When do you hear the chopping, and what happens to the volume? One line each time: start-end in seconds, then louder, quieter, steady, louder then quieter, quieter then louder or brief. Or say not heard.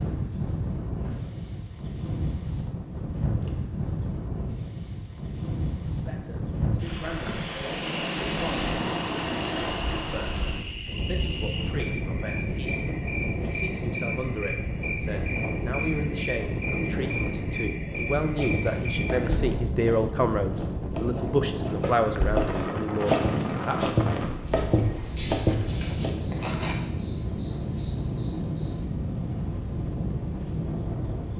18.4-26.8 louder.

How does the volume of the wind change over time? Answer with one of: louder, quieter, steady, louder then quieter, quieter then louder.
steady.